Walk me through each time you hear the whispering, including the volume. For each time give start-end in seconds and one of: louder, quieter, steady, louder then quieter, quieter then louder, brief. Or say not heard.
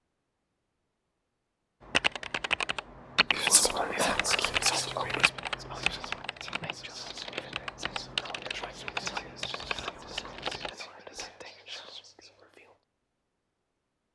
3.3-12.8 quieter.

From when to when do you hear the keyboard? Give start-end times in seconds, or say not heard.
1.9-10.8.